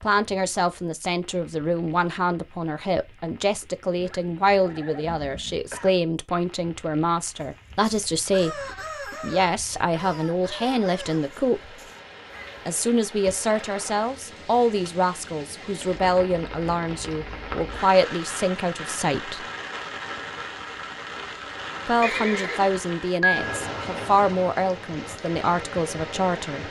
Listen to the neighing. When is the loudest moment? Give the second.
23 s.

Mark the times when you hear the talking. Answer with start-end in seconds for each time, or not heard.
0.0-11.8, 12.7-19.4, 21.9-26.6.